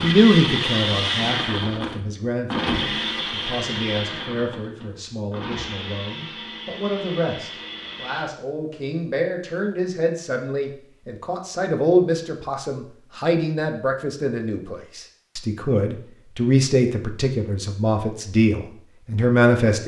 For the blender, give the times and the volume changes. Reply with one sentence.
The blender can be heard from 0.0 to 8.2 s, getting quieter.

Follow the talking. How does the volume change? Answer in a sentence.
The loudness of the talking goes up.